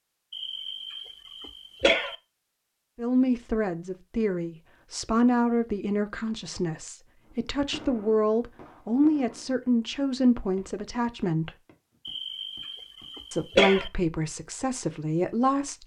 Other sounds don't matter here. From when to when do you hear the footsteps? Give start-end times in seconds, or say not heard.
not heard.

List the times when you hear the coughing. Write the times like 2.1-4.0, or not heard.
0.3-2.1, 12.1-13.9.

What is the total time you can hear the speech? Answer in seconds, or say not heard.
11 s.